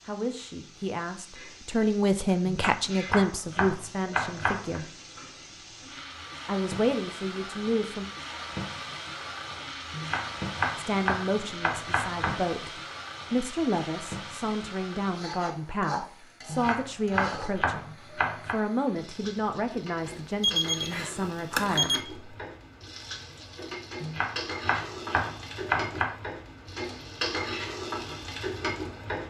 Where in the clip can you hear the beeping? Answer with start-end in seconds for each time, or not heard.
20.1-22.1.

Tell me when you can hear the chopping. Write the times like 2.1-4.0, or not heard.
2.5-4.8, 9.9-12.4, 16.4-18.6, 24.0-26.1.